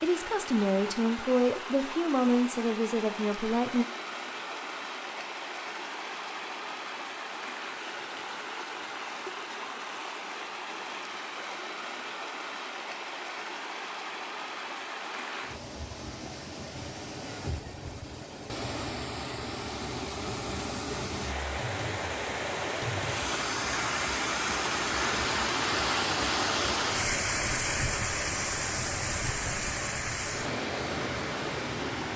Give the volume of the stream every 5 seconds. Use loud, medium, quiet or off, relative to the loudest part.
medium, medium, medium, medium, loud, loud, loud.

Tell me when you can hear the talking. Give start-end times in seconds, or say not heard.
0.0-3.9.